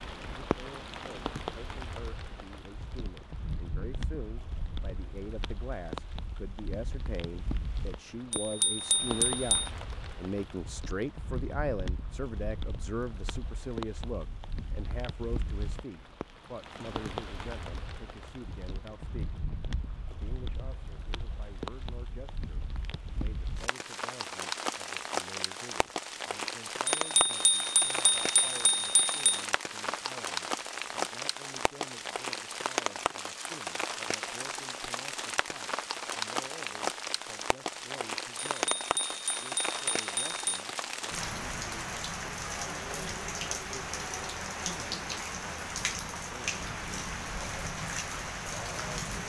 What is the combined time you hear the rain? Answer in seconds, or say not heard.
49 s.